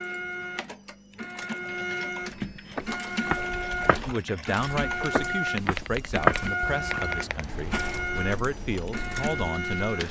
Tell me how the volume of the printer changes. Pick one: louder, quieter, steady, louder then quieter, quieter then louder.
steady.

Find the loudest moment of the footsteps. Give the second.
6 s.